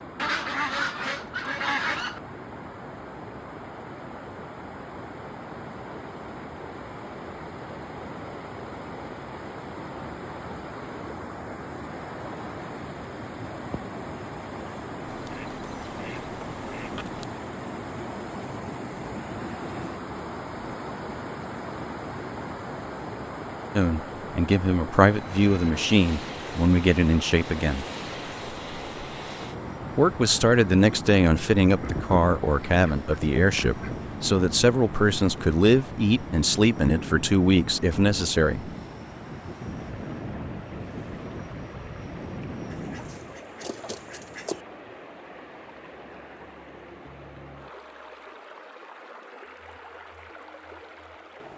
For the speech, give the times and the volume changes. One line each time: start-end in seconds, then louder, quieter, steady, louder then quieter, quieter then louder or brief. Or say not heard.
23.8-27.9 steady
29.9-38.7 steady.